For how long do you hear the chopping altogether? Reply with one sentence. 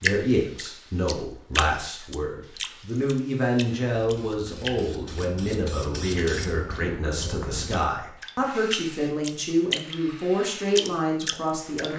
You can't hear the chopping here.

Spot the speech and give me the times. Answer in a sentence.
The speech can be heard from 0.0 to 11.9 s.